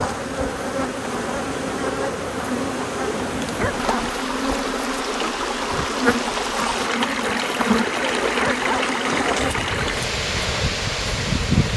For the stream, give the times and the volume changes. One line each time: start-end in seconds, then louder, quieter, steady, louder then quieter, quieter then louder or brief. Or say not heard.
0.0-11.7 louder.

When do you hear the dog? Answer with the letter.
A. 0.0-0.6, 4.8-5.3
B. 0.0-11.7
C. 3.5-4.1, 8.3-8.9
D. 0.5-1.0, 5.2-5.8
C.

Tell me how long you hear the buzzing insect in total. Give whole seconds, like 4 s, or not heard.
12 s.